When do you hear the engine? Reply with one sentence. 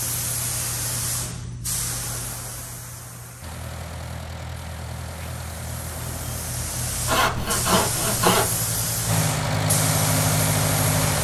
The engine can be heard from 3.4 to 11.2 s.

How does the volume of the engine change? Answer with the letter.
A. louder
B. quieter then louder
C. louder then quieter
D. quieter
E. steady
A.